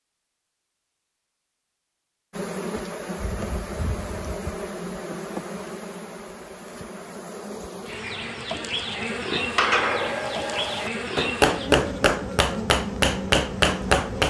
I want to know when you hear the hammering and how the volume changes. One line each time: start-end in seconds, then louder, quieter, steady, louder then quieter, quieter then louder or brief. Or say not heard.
9.6-14.2 louder.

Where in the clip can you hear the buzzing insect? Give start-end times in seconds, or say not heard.
2.3-14.2.